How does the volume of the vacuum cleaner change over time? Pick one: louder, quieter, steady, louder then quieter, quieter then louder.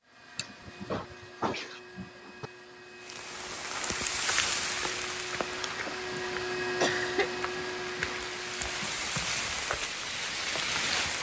louder.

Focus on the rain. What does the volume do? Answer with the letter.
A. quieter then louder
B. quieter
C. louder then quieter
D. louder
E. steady
A.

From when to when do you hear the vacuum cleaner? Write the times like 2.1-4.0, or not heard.
0.0-9.1.